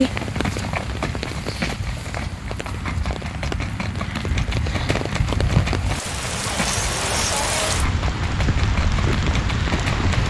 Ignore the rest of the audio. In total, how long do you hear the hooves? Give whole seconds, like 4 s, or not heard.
10 s.